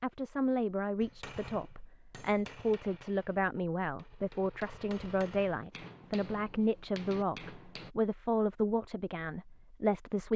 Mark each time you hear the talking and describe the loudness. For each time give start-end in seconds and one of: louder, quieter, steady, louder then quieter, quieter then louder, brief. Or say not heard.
0.0-10.3 steady.